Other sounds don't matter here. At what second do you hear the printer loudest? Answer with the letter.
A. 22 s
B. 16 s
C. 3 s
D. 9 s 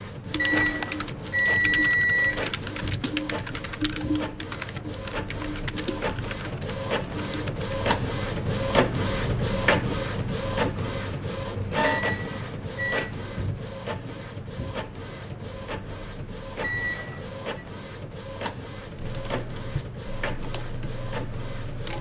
D.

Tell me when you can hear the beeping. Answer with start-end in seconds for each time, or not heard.
0.3-3.0, 11.8-13.2, 16.6-17.5.